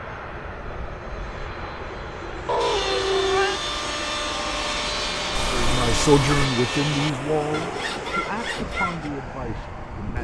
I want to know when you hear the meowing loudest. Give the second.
3 s.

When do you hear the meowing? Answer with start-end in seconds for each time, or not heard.
2.5-3.6, 5.3-6.5.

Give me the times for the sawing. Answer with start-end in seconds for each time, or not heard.
2.5-9.1.